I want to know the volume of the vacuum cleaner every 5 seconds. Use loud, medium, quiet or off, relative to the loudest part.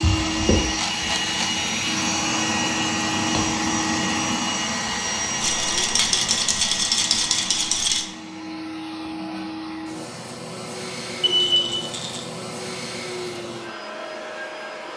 loud, medium, medium.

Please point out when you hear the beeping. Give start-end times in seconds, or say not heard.
11.2-11.8.